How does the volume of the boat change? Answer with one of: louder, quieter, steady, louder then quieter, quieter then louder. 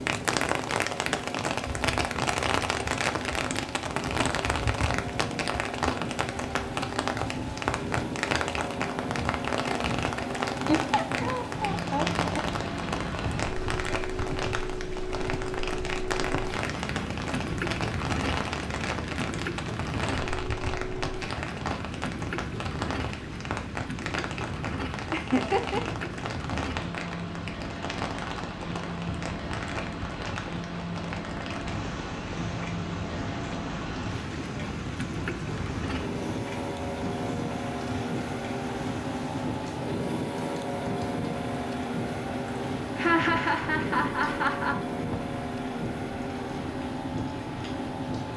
steady.